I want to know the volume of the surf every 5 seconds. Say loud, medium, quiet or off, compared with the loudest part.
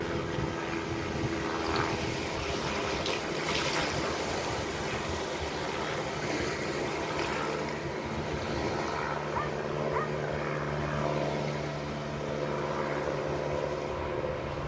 loud, loud, medium.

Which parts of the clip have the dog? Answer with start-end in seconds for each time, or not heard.
9.3-10.2.